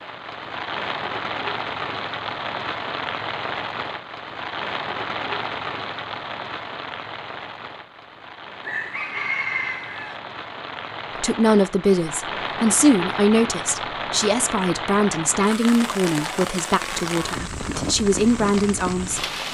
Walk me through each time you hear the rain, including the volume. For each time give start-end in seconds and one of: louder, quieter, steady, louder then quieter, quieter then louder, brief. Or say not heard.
0.0-19.5 quieter then louder.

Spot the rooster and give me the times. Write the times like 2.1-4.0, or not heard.
8.6-10.2.